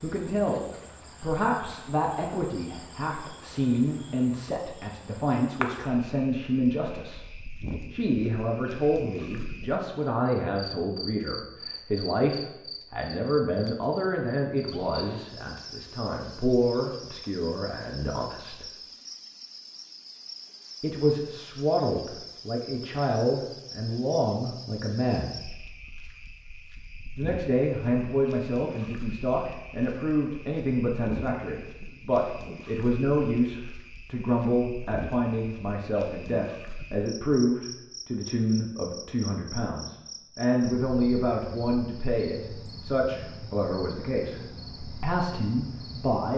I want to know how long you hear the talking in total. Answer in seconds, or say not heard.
41 s.